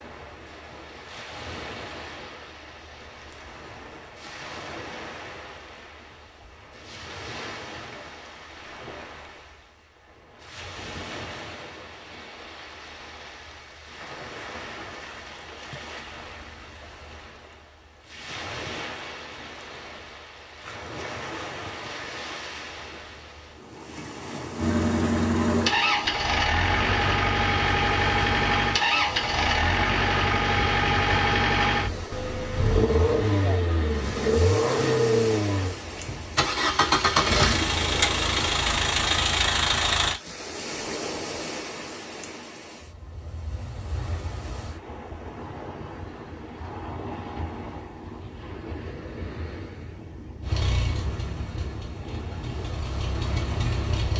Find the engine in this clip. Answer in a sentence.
You can hear the engine from 24.6 to 40.2 s and from 50.4 to 54.1 s.